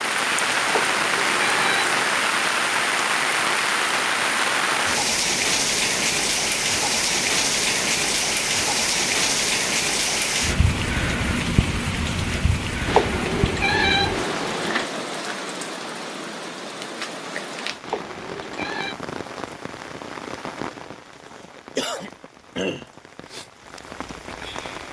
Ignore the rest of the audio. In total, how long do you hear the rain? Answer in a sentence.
You can hear the rain for 25 seconds altogether.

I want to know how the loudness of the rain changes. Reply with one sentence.
The volume of the rain goes down.